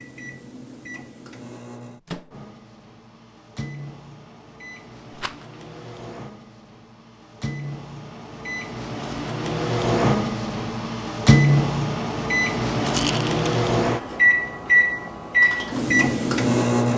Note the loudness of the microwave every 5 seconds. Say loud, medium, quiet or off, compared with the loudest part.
quiet, medium, loud, loud.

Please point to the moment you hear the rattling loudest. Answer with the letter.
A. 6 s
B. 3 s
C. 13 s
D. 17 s
C.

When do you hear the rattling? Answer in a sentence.
The rattling can be heard from 5.1 to 5.5 s and from 12.8 to 13.5 s.